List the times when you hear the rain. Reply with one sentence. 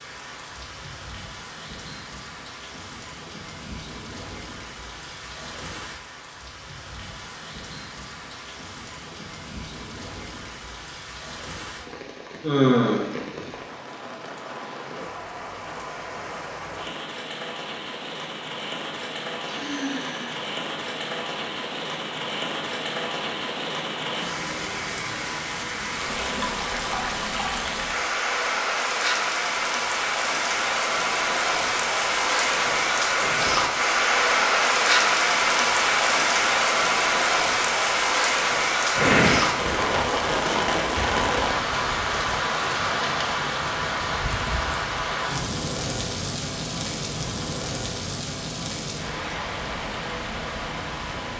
You can hear the rain from 0.0 to 51.3 s.